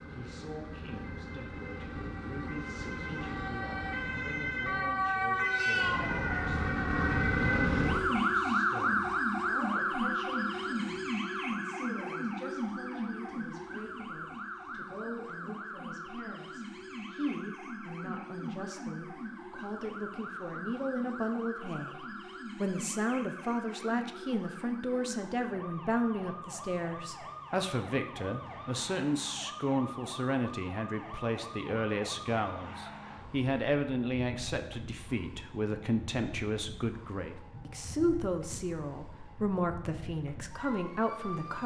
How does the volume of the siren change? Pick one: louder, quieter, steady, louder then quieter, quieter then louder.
quieter.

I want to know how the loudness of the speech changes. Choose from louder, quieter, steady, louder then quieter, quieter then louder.
louder.